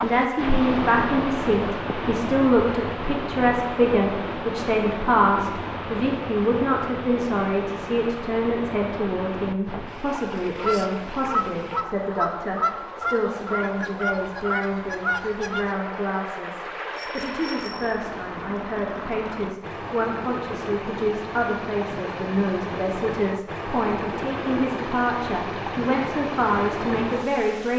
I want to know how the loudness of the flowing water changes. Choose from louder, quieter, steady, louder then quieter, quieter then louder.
quieter then louder.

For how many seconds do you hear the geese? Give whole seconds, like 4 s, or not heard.
5 s.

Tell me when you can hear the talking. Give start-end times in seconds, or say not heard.
0.0-27.7.